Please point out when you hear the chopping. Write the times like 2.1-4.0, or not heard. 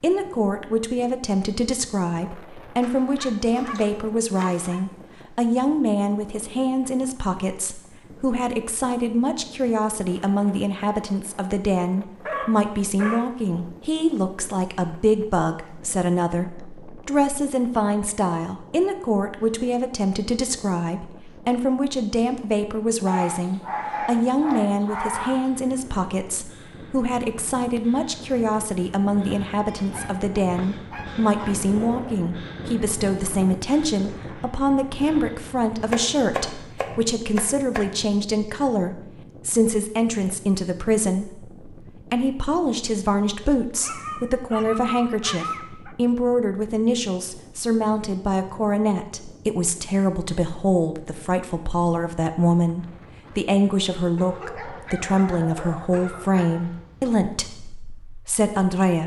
2.8-4.7, 35.9-37.9.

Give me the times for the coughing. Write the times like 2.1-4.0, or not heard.
not heard.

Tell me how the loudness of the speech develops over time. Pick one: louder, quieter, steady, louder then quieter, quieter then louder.
steady.